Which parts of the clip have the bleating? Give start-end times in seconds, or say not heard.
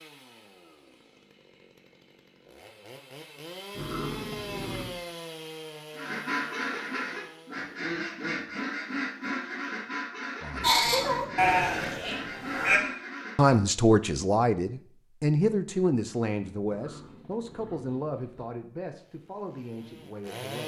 10.6-12.8.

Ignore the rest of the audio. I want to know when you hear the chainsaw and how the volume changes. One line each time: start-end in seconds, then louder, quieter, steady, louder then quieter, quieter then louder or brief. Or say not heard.
0.0-7.7 louder then quieter
18.9-20.6 brief.